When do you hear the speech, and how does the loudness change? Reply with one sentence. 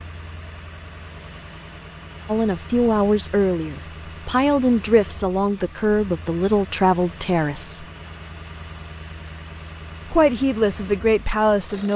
The speech can be heard from 2.2 to 7.8 s, at a steady volume; and briefly from 10.1 to 11.9 s.